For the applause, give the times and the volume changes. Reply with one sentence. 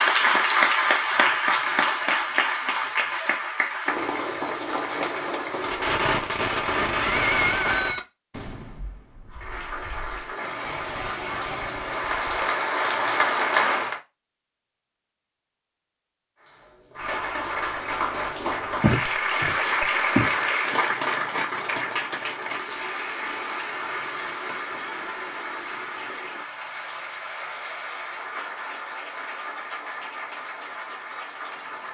The applause can be heard from 0.0 to 6.0 s, getting quieter; from 9.2 to 14.0 s, getting louder; and from 16.4 to 31.8 s, getting quieter.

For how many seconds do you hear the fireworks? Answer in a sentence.
The fireworks can be heard for 7 seconds in total.